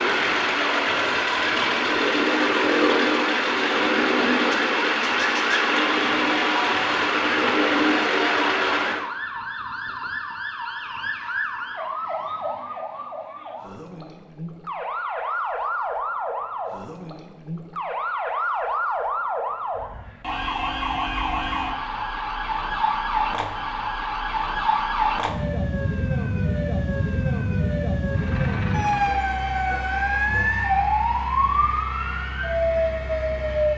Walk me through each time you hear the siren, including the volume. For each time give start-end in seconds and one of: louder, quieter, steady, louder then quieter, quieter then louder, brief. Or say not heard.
0.0-33.7 louder.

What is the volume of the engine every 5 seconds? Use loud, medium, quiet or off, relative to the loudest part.
loud, loud, off, off, off, quiet, quiet.